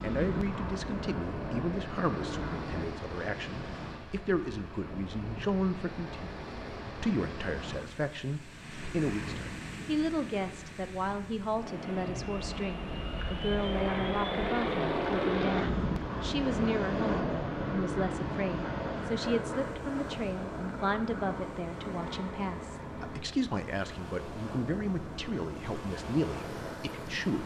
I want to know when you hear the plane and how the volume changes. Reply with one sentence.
You can hear the plane briefly from 0.0 to 2.9 s; and from 11.8 to 27.4 s, getting quieter.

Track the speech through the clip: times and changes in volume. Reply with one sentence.
You can hear the speech from 0.0 to 27.4 s, at a steady volume.